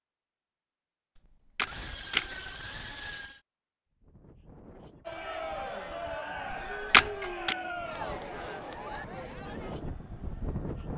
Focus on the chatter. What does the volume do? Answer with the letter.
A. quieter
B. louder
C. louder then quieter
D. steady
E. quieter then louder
A.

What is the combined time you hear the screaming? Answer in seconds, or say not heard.
2 s.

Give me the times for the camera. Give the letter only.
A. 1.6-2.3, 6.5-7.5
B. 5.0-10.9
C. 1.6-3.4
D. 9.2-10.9
A.